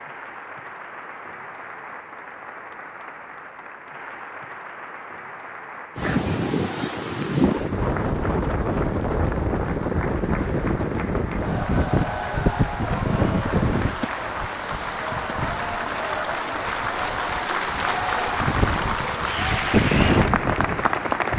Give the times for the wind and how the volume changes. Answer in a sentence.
The wind can be heard from 6.0 to 21.3 s, getting quieter then louder.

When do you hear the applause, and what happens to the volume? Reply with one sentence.
You can hear the applause from 0.0 to 21.3 s, getting louder.